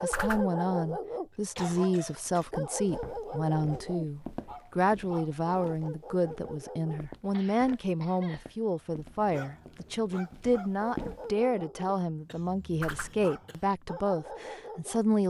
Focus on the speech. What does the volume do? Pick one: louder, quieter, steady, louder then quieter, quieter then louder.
steady.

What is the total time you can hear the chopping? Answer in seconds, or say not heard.
not heard.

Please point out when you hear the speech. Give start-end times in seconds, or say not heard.
0.0-15.2.